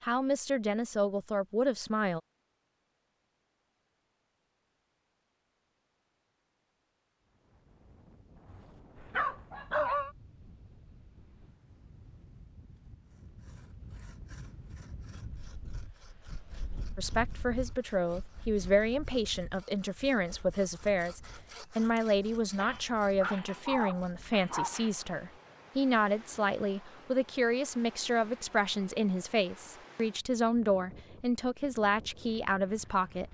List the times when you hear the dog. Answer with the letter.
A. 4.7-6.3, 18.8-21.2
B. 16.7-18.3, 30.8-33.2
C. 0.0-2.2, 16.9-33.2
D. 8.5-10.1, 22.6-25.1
D.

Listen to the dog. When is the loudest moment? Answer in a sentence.
The volume of the dog peaks at 10 seconds.